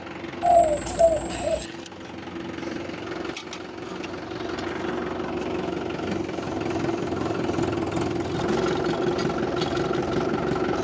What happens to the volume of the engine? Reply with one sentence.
The volume of the engine goes up.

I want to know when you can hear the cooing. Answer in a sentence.
You can hear the cooing from 0.4 to 1.6 s.